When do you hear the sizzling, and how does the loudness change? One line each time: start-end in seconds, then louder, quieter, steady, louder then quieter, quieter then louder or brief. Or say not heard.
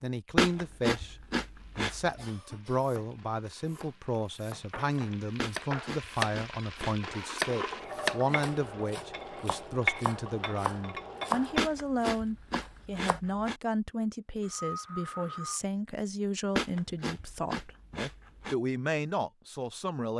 1.5-11.7 louder.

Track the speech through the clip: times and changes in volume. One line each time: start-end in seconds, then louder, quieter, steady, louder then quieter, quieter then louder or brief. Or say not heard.
0.0-20.1 steady.